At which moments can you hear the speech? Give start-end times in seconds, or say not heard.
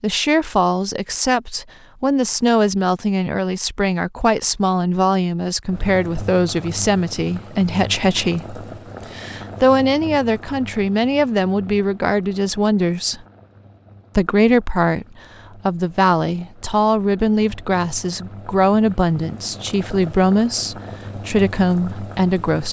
0.0-13.2, 14.2-15.1, 15.7-22.6.